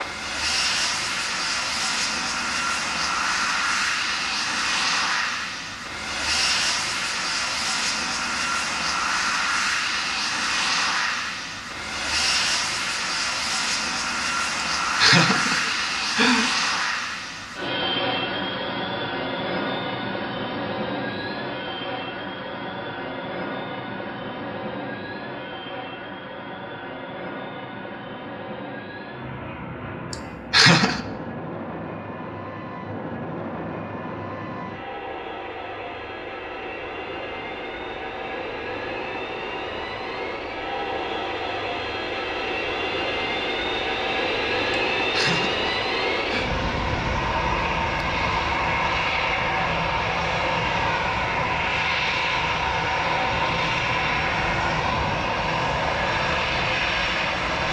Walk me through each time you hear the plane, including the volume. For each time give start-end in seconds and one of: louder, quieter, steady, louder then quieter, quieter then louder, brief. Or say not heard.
0.0-57.6 quieter then louder.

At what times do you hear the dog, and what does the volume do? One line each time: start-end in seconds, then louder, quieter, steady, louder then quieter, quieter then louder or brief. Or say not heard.
not heard.